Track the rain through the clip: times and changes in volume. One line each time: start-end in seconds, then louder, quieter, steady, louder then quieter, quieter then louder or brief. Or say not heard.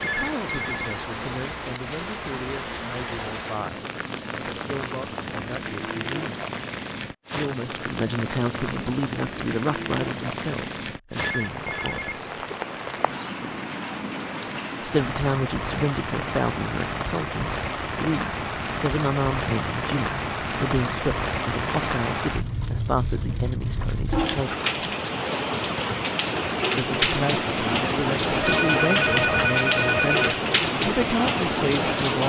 0.0-32.2 louder.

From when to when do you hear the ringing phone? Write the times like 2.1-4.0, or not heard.
0.0-0.8, 11.2-12.6, 28.4-30.4.